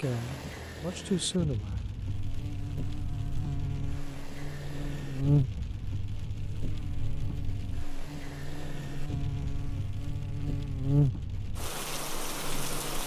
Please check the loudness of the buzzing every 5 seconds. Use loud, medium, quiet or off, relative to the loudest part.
medium, loud, loud.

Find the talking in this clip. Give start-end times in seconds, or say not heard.
0.0-1.9.